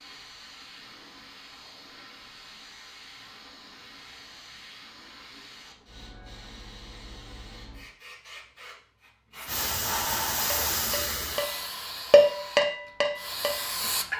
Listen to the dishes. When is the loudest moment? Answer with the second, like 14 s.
12 s.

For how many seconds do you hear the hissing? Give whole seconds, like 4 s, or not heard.
14 s.